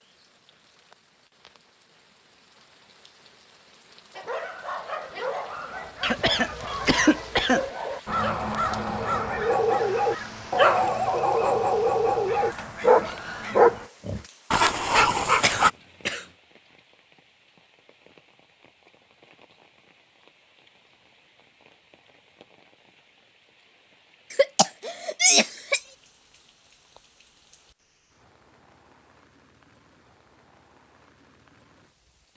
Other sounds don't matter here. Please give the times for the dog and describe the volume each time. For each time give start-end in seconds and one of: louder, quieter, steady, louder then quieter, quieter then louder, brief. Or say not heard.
4.2-15.7 louder.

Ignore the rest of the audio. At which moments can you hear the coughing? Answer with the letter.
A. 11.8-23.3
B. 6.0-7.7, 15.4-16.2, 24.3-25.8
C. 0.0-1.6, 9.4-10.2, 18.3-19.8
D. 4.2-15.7
B.